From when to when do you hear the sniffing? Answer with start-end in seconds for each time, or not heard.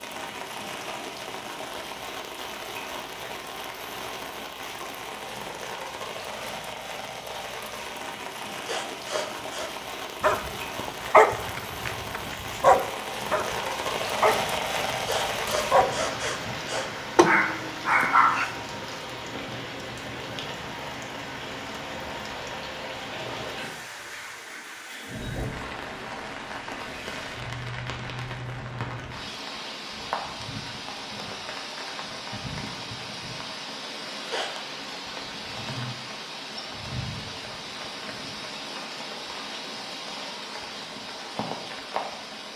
8.6-9.7, 14.9-16.9, 34.0-34.5.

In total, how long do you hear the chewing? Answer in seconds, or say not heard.
not heard.